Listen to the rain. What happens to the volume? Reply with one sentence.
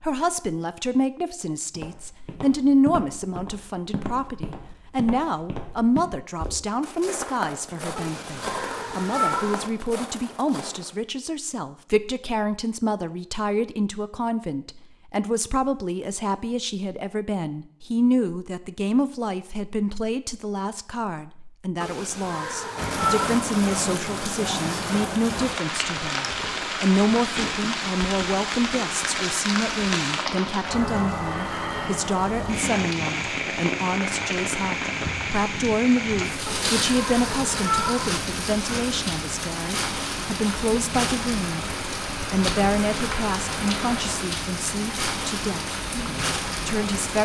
The loudness of the rain stays about the same.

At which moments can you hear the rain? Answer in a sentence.
You can hear the rain from 22.8 to 47.2 s.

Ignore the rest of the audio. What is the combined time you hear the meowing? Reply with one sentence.
You can hear the meowing for 5 seconds altogether.